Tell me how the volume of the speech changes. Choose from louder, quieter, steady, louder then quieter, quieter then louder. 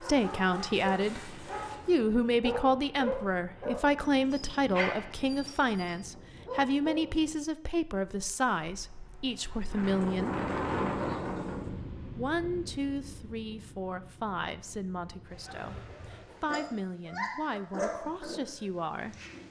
quieter.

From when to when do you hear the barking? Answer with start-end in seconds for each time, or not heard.
0.0-7.0, 15.4-19.4.